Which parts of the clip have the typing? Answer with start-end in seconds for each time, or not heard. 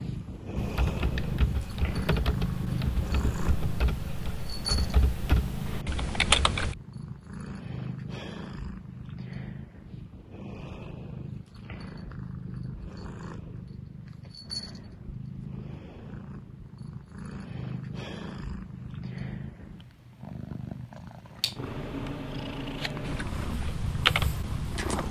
0.6-6.8, 23.0-25.0.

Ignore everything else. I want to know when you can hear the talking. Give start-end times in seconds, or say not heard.
not heard.